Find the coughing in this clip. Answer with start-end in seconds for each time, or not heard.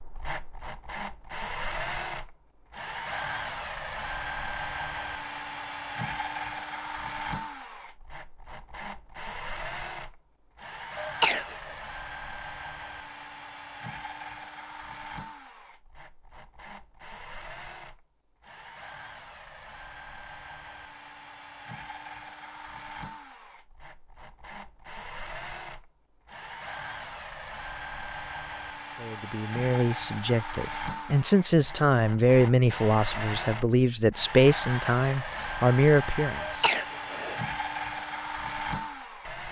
11.0-11.6, 36.4-37.4.